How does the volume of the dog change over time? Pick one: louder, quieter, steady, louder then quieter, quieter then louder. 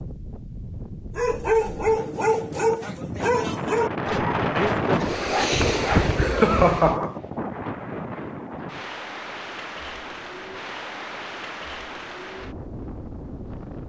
quieter.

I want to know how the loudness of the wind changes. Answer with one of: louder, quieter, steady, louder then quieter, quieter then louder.
louder then quieter.